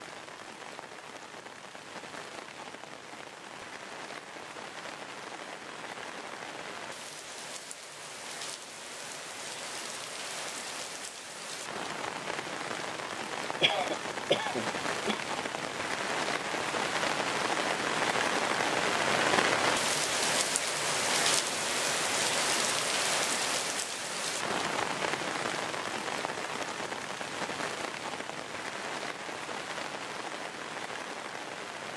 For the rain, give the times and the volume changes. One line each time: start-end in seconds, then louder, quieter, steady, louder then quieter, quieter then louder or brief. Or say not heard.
0.0-31.9 louder then quieter.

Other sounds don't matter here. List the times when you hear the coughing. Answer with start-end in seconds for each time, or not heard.
13.6-15.2.